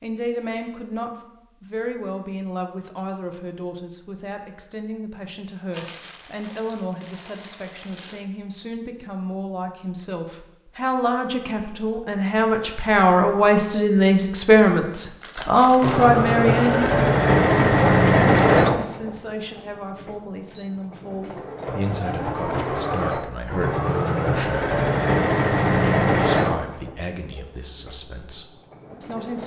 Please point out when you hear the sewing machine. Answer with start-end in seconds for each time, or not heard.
15.8-29.4.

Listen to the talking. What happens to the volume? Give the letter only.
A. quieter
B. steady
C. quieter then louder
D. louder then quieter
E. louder
D.